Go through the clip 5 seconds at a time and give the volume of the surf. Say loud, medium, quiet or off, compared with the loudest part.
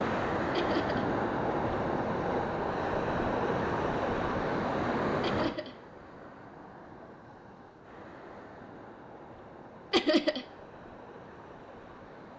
loud, medium, quiet.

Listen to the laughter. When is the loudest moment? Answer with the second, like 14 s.
10 s.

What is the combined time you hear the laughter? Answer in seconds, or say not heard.
2 s.